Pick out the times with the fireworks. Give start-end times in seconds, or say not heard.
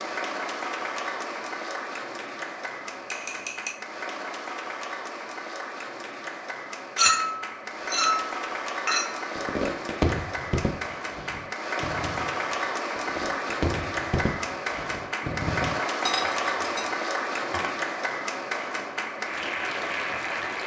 9.3-15.8.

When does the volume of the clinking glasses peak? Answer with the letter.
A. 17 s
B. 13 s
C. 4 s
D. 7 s
D.